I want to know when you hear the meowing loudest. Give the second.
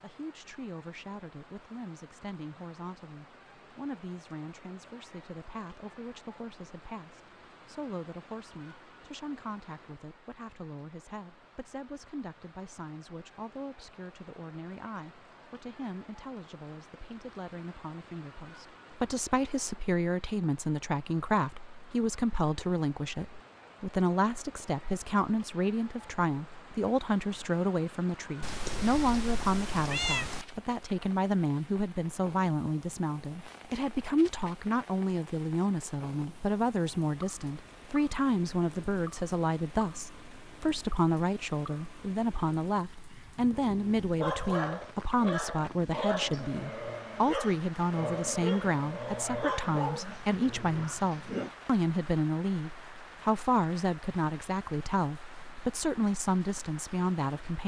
30 s.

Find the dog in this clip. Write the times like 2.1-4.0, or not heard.
43.5-51.5.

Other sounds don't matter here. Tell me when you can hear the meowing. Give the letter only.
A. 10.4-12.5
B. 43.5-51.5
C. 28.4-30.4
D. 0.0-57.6
C.